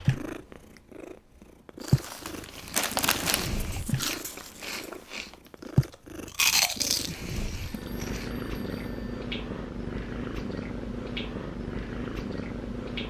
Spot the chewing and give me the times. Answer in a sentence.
The chewing can be heard from 1.8 to 8.3 s.